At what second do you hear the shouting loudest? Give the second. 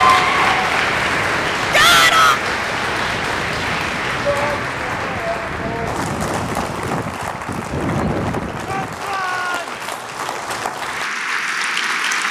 2 s.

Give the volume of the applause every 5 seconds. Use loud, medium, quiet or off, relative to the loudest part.
loud, medium, loud.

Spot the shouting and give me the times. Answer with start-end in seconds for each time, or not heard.
1.7-2.4, 4.2-5.9, 8.7-9.8.